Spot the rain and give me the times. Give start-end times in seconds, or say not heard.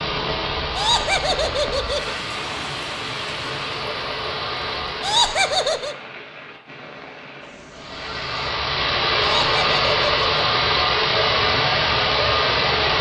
0.0-8.6.